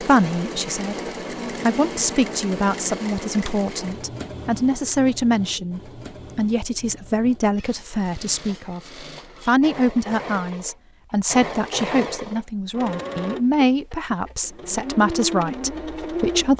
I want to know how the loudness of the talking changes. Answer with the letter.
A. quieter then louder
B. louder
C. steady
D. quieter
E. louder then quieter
C.